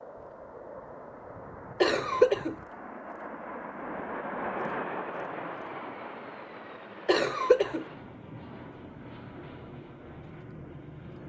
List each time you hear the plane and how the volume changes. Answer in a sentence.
The plane can be heard from 0.0 to 11.2 s, getting louder then quieter.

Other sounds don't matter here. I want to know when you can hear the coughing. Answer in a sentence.
You can hear the coughing from 1.8 to 2.5 s and from 7.0 to 7.8 s.